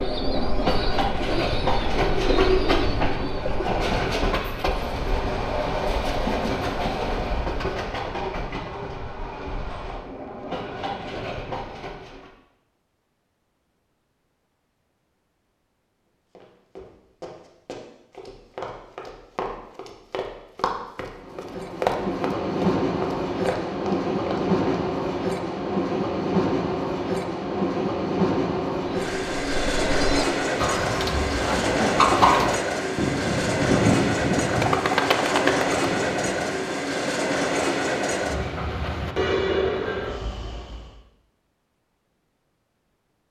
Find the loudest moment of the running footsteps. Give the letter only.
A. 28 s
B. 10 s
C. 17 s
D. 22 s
D.